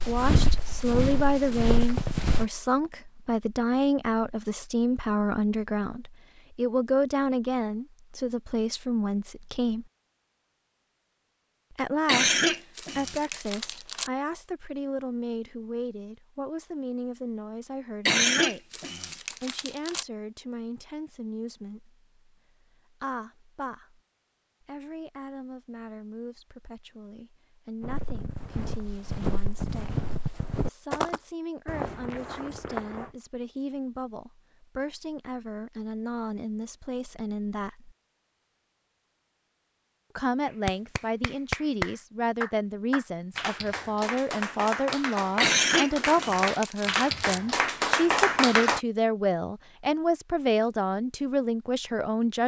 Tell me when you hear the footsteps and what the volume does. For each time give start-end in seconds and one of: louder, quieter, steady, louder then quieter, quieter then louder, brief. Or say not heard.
0.0-2.5 brief
27.8-33.1 louder then quieter.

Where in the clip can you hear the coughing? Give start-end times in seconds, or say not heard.
12.1-14.1, 18.1-20.1, 45.4-47.4.